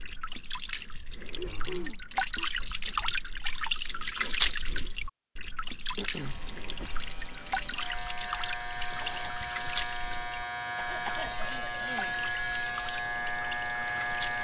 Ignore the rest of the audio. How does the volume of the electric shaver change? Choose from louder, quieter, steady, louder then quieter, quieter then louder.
louder.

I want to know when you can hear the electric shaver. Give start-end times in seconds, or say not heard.
6.1-14.3.